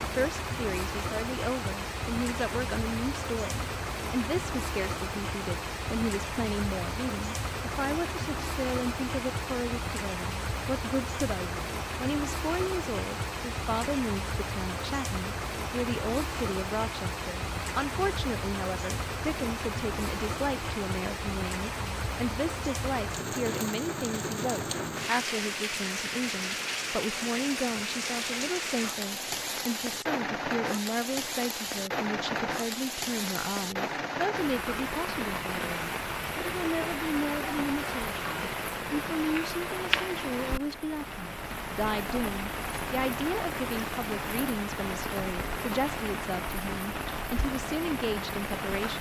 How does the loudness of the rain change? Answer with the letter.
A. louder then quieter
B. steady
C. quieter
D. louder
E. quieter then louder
B.